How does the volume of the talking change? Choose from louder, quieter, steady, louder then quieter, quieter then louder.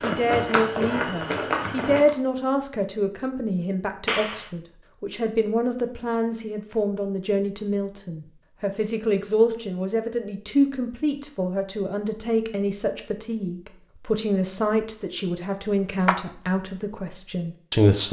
steady.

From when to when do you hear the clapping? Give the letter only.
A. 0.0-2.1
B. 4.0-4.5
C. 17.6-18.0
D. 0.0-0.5
B.